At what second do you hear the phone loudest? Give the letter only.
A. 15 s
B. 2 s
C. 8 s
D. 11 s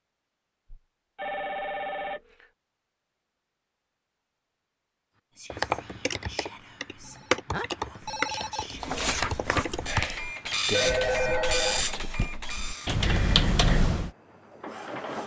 D.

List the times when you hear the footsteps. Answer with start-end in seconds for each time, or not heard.
not heard.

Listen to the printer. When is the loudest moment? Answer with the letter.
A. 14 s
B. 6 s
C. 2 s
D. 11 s
D.